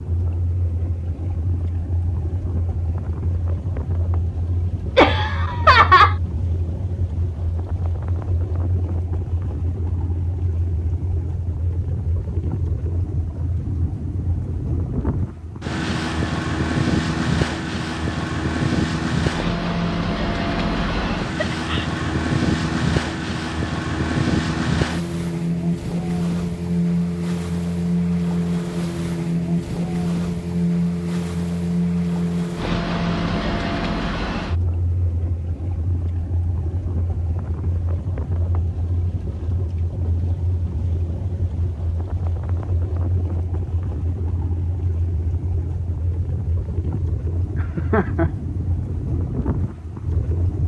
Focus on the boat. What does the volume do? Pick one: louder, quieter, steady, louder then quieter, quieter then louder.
louder then quieter.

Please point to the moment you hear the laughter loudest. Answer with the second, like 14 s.
6 s.